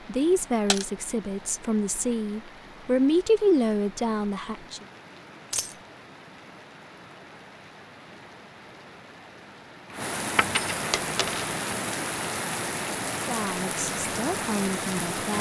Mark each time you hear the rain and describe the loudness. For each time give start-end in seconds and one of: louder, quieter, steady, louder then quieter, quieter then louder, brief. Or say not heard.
0.0-15.3 louder.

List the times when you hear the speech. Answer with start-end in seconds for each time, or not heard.
0.1-4.8, 13.2-15.3.